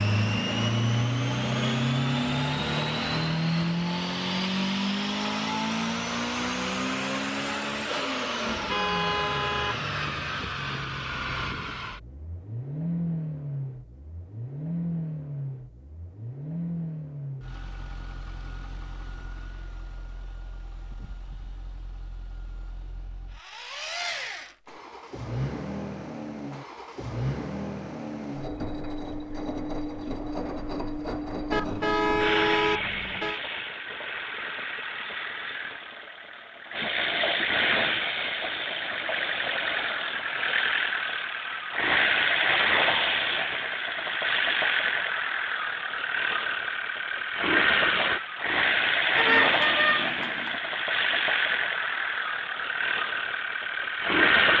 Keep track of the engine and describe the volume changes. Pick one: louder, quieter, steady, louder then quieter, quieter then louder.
quieter then louder.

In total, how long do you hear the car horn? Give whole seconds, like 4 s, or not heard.
5 s.